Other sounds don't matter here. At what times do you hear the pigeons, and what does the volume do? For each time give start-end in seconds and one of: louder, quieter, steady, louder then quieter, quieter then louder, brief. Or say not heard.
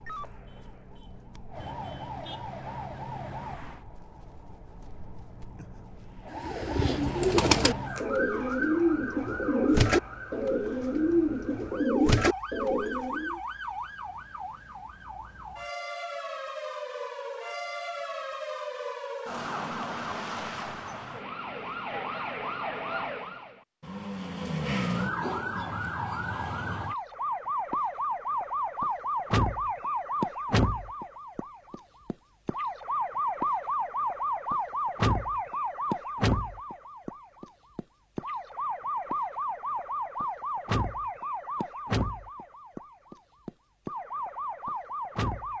6.3-13.4 steady.